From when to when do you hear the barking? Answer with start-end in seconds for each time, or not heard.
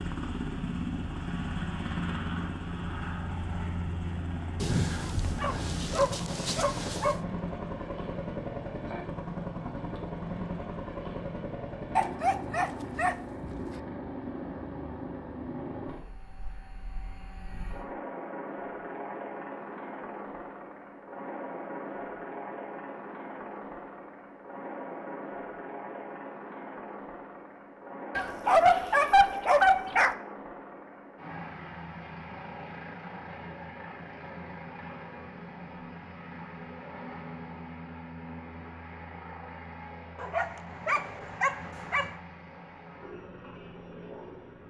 4.6-7.2, 11.9-13.8, 28.1-30.1, 40.1-42.1.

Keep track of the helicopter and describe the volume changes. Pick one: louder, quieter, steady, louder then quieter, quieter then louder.
quieter.